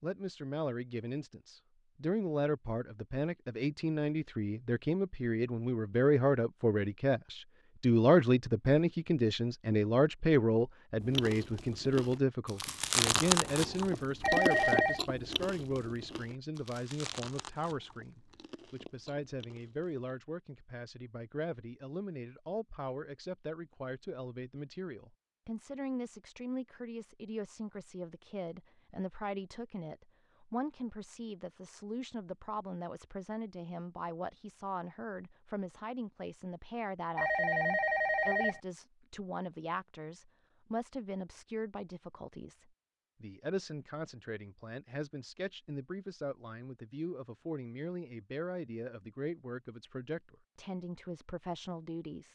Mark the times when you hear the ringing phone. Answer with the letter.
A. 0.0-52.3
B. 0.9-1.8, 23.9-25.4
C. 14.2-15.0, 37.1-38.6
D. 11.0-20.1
C.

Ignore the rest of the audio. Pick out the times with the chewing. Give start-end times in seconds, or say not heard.
11.0-20.1.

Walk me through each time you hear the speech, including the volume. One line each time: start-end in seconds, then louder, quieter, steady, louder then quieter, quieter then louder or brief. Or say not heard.
0.0-52.3 quieter.